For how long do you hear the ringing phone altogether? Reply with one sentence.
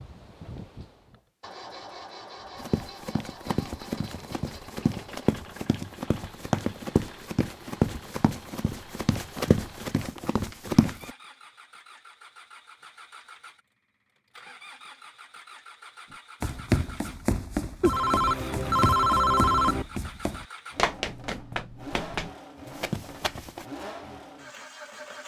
You can hear the ringing phone for 2 seconds altogether.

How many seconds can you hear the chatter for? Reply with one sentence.
You can't hear the chatter here.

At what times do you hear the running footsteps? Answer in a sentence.
The running footsteps can be heard from 2.5 to 11.1 s and from 16.4 to 23.6 s.